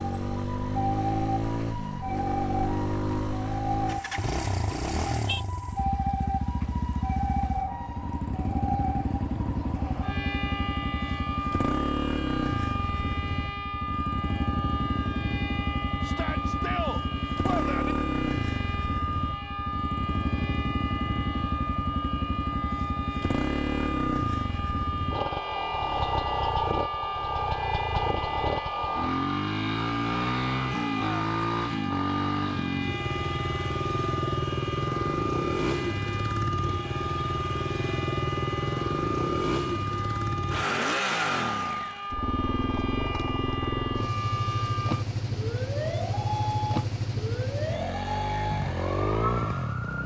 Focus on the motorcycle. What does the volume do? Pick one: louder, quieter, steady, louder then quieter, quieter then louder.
steady.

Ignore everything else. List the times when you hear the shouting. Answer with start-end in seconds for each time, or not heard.
16.0-17.9, 30.6-31.2.